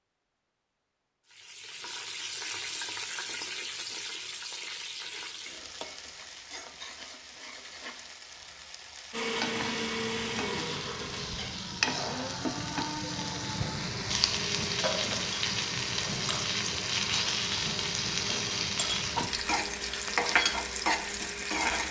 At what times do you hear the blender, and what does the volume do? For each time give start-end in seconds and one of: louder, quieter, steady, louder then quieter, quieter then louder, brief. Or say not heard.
9.1-21.7 quieter.